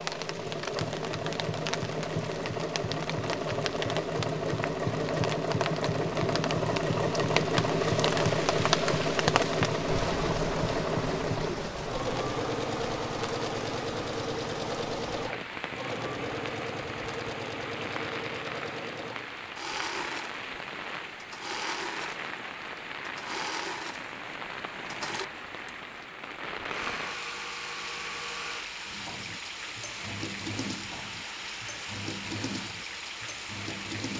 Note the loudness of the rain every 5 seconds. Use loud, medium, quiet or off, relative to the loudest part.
medium, loud, medium, medium, medium, medium, medium.